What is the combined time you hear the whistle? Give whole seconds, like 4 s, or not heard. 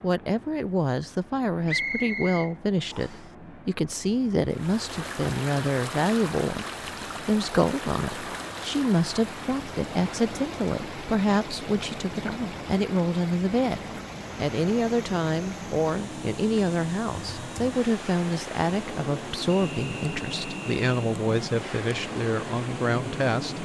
3 s.